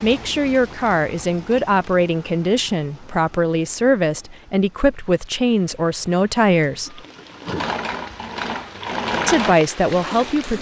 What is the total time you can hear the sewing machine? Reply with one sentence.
You can hear the sewing machine for 4 seconds altogether.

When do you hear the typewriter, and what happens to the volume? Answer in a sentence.
You can't hear the typewriter here.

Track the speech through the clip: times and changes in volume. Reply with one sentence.
The speech can be heard from 0.0 to 7.0 s, at a steady volume; and briefly from 9.2 to 10.5 s.